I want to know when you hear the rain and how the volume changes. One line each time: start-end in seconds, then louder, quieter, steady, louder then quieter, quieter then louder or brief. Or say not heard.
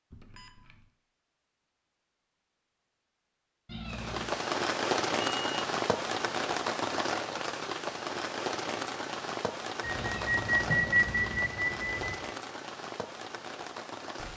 3.9-14.3 quieter.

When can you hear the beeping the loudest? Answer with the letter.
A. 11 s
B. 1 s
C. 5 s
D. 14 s
A.